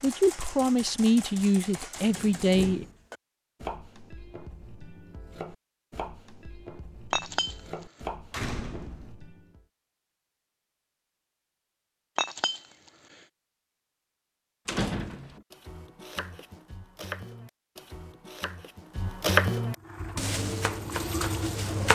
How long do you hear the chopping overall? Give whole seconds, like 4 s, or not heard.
16 s.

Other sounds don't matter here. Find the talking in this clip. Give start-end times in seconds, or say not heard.
0.0-2.9.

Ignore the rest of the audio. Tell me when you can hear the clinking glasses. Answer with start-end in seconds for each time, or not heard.
7.1-7.8, 12.2-13.2.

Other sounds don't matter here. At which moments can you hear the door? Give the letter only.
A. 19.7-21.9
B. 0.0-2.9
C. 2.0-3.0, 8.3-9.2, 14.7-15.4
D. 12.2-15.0
C.